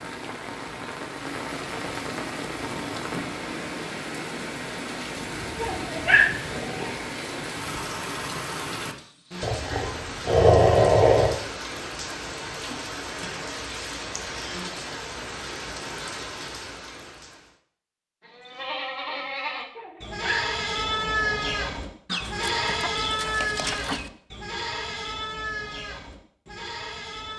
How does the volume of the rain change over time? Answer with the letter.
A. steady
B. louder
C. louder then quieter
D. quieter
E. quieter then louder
A.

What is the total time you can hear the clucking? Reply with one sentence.
The clucking can be heard for 2 seconds in total.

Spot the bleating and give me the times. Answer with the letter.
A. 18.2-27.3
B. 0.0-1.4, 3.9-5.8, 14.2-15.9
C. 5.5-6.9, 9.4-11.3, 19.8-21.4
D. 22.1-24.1
A.